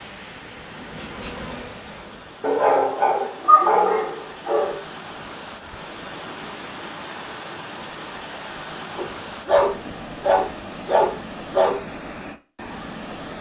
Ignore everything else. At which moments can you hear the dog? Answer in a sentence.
You can hear the dog from 2.4 to 4.8 s and from 8.9 to 11.8 s.